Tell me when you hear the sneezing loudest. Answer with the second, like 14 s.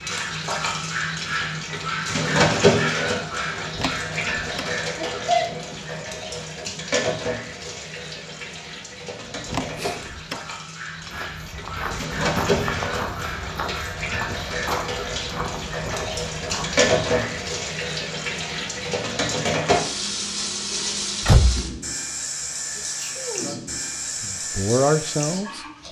5 s.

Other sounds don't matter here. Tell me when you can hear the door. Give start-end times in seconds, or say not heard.
3.8-4.7, 9.4-10.4, 21.2-21.8.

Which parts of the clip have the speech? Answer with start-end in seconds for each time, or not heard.
23.1-25.6.